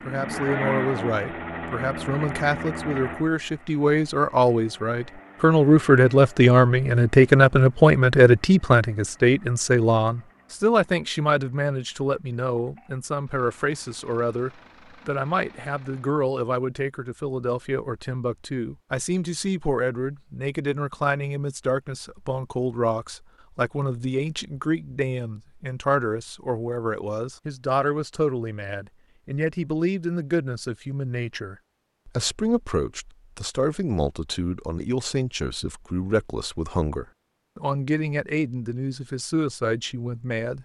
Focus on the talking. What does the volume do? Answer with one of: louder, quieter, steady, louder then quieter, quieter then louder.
quieter.